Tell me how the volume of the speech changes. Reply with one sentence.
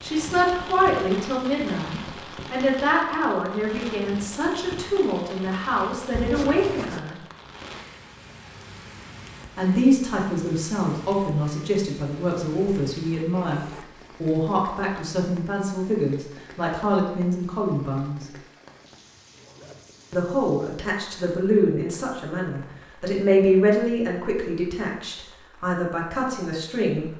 The loudness of the speech stays about the same.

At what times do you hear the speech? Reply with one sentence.
The speech can be heard from 0.0 to 7.2 s, from 9.6 to 18.2 s and from 20.1 to 27.1 s.